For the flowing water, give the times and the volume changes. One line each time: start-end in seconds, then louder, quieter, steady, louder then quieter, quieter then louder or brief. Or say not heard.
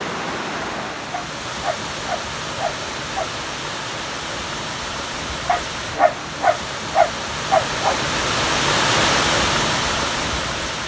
0.0-10.8 louder.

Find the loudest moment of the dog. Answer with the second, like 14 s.
7 s.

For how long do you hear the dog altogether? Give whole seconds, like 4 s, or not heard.
5 s.